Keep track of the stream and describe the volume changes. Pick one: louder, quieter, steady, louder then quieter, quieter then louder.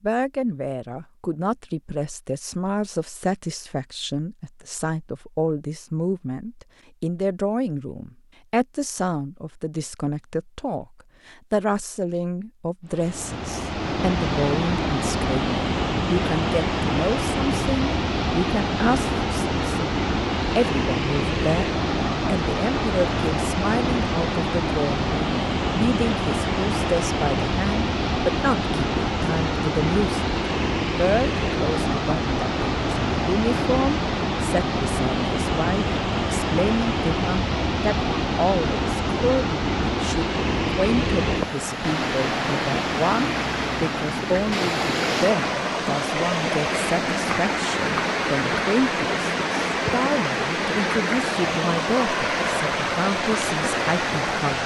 steady.